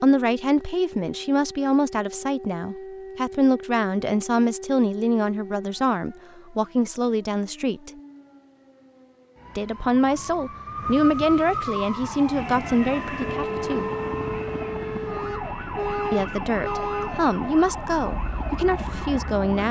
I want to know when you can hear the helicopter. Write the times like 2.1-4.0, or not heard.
12.3-19.6.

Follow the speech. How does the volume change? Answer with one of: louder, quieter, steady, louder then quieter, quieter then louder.
steady.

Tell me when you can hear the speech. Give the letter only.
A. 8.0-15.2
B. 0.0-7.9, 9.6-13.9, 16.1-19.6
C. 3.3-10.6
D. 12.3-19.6
B.